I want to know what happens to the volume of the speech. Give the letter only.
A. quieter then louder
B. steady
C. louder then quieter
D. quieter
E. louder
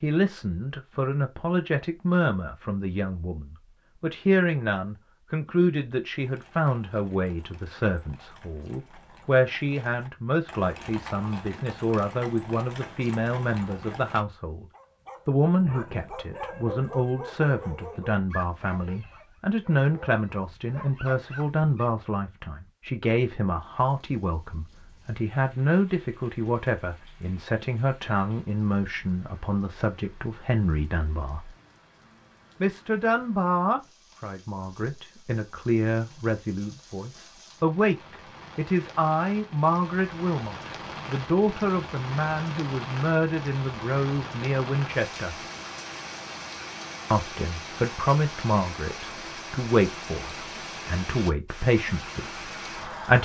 B.